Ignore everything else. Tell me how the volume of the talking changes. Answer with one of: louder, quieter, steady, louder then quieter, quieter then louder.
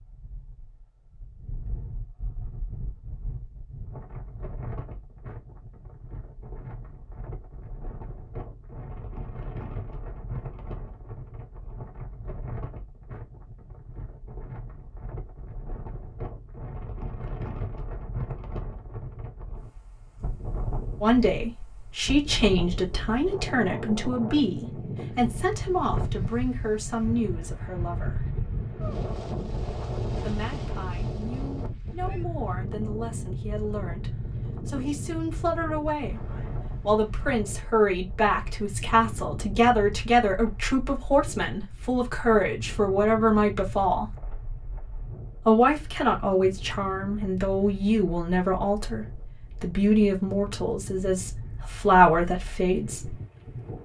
quieter then louder.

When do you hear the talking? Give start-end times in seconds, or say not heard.
21.0-28.2, 30.1-44.0, 45.5-53.1.